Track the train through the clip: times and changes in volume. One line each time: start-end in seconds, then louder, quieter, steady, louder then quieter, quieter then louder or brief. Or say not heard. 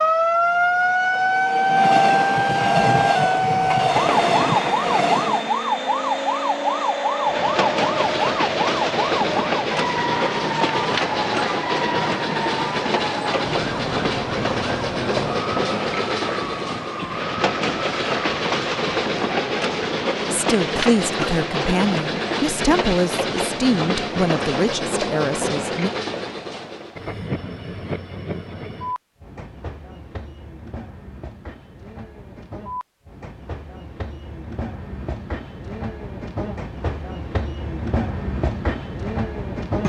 0.2-39.8 quieter.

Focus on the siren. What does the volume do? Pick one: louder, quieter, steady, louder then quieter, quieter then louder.
quieter.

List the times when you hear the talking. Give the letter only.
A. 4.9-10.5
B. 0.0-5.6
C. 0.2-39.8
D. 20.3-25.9
D.